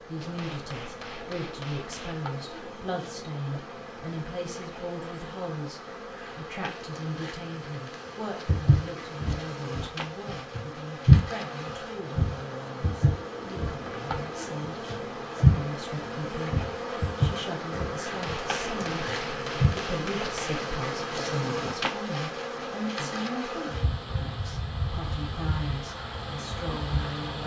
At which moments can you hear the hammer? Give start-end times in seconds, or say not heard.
0.2-2.2, 18.1-20.6.